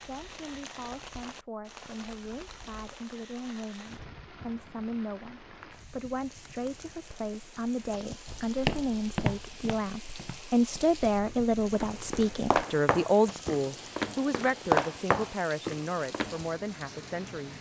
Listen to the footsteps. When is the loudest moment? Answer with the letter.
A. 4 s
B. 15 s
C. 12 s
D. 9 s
B.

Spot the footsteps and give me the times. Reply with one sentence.
You can hear the footsteps from 8.2 to 16.4 s.